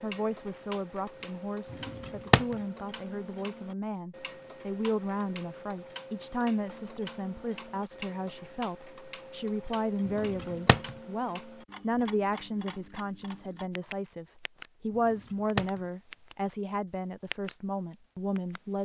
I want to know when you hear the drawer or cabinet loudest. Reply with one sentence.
The volume of the drawer or cabinet peaks at 2 seconds.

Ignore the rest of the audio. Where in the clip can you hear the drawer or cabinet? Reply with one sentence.
You can hear the drawer or cabinet from 1.7 to 2.5 s, from 10.1 to 10.9 s and from 14.9 to 15.8 s.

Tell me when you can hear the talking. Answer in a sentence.
You can hear the talking from 0.0 to 18.8 s.